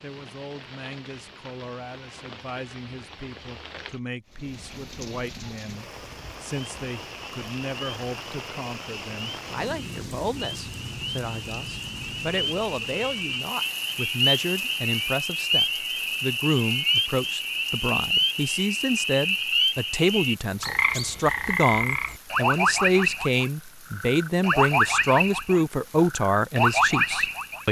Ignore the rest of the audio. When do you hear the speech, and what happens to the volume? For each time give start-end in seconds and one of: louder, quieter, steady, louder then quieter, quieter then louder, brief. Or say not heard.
0.0-27.6 louder.